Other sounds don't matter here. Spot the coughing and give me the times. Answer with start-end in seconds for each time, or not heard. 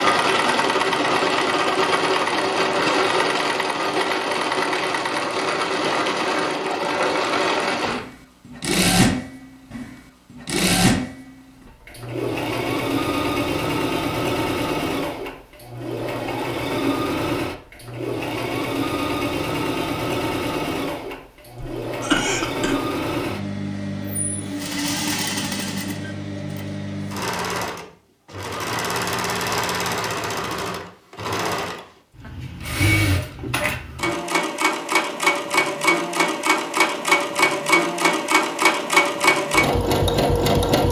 21.6-22.8.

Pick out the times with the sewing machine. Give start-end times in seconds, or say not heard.
0.0-40.8.